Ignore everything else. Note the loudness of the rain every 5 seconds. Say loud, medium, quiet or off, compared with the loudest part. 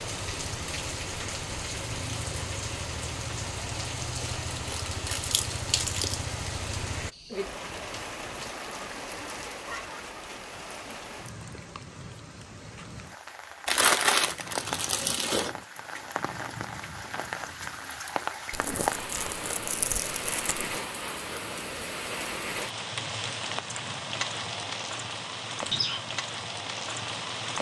loud, loud, medium, loud, loud, loud.